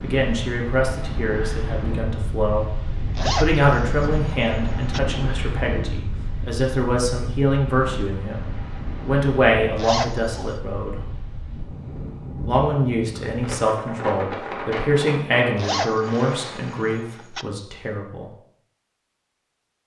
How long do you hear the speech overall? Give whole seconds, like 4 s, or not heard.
17 s.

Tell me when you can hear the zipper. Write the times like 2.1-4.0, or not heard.
3.1-5.0, 9.8-10.6, 15.6-17.4.